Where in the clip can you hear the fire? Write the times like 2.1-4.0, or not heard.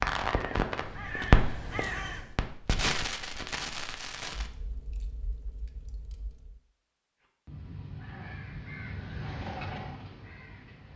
0.0-6.6.